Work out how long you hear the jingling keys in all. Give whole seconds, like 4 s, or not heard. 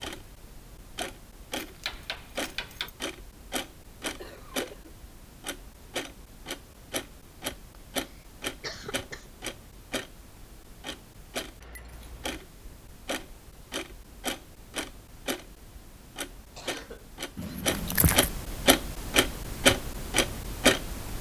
3 s.